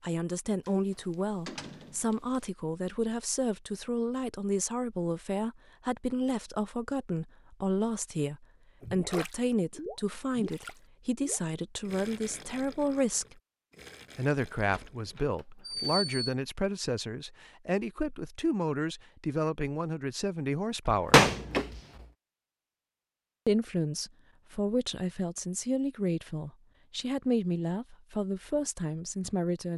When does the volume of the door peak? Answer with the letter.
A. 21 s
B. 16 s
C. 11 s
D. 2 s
A.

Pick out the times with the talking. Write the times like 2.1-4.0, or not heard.
0.0-13.3, 14.2-21.3, 23.4-29.7.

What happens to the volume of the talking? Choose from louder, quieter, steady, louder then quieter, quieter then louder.
steady.